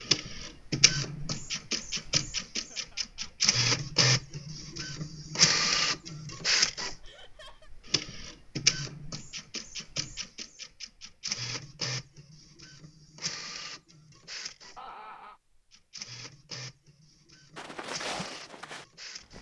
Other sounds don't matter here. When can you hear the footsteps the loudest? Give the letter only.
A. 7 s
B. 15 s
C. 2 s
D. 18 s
D.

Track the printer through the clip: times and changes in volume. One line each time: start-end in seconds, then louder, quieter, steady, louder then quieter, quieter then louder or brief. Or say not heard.
0.0-19.3 quieter.